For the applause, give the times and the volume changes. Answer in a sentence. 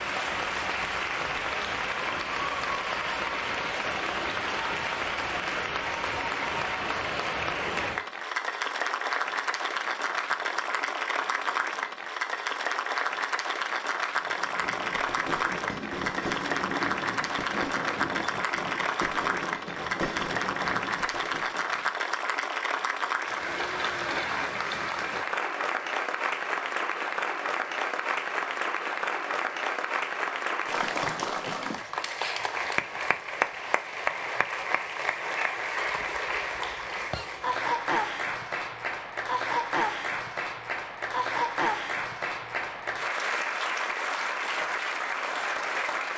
You can hear the applause from 0.0 to 46.1 s, at a steady volume.